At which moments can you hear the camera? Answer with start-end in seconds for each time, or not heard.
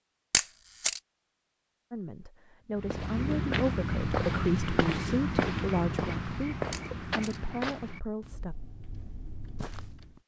0.3-1.0, 6.7-7.4.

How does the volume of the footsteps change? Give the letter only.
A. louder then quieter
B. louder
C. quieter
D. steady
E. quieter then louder
C.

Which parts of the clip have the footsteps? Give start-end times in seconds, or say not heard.
2.8-10.2.